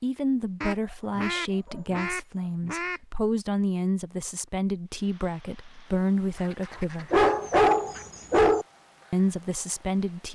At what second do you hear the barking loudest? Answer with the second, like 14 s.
8 s.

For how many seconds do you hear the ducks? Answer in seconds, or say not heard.
4 s.